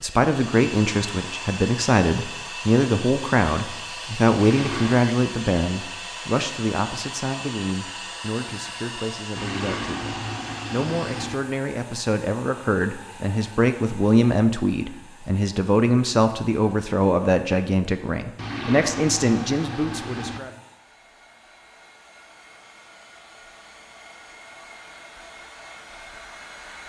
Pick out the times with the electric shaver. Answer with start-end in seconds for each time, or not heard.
not heard.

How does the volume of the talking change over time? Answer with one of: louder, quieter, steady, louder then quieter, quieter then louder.
quieter then louder.